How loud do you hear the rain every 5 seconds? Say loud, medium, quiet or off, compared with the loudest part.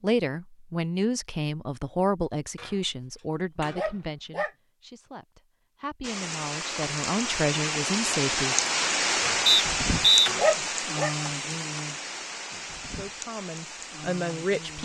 off, loud, medium.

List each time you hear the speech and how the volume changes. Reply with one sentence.
You can hear the speech from 0.0 to 8.6 s, getting quieter then louder; and briefly from 12.4 to 14.8 s.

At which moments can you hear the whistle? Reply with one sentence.
The whistle can be heard from 9.4 to 10.3 s.